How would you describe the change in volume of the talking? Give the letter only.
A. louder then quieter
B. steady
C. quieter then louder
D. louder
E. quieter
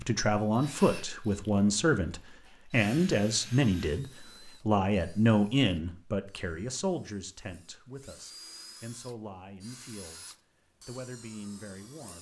E.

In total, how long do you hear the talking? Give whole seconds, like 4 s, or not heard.
12 s.